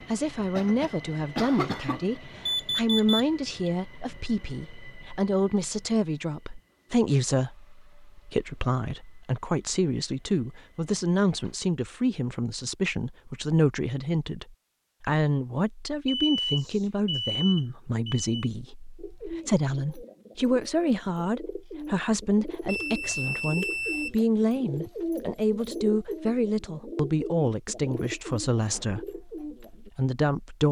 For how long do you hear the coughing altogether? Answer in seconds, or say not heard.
2 s.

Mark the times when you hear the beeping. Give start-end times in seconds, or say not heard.
2.5-3.7, 16.1-18.3, 22.6-24.1.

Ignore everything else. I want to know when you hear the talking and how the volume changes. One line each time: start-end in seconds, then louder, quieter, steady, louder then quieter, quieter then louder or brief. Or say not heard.
0.1-30.6 steady.